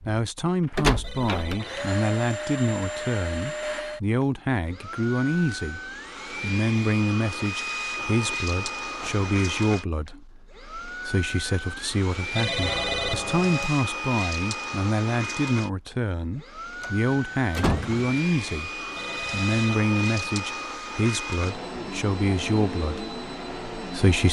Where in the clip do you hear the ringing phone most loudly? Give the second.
13 s.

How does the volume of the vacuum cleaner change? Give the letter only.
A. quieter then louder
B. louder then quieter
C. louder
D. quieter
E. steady
E.